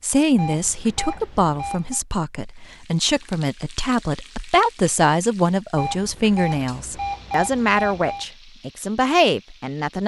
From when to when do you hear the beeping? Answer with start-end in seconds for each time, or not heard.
0.3-2.0, 5.8-8.2.